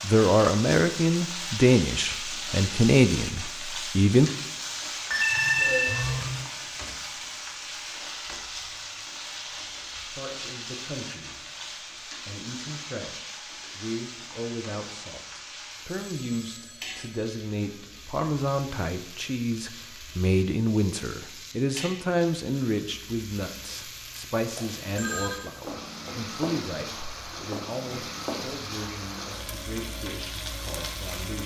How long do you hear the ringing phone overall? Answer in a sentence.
You can hear the ringing phone for 4 seconds altogether.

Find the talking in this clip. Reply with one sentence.
The talking can be heard from 0.0 to 4.3 s and from 10.1 to 31.4 s.